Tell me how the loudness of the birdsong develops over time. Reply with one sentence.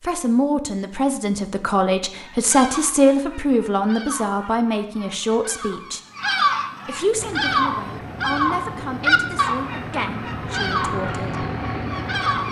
The loudness of the birdsong goes up, then down.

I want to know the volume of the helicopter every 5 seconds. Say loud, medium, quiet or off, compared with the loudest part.
off, medium, loud.